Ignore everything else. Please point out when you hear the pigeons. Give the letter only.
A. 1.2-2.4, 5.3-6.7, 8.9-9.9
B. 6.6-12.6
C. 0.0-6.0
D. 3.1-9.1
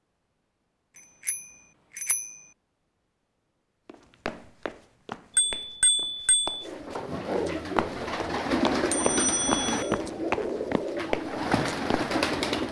B.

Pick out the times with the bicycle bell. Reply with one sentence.
The bicycle bell can be heard from 1.2 to 2.4 s, from 5.3 to 6.7 s and from 8.9 to 9.9 s.